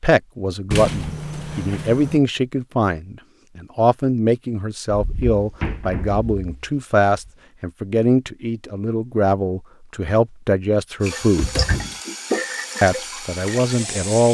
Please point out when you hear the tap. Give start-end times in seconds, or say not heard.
11.0-14.2.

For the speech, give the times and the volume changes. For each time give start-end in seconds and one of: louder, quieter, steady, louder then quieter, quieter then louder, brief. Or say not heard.
0.0-11.6 steady
12.8-14.2 brief.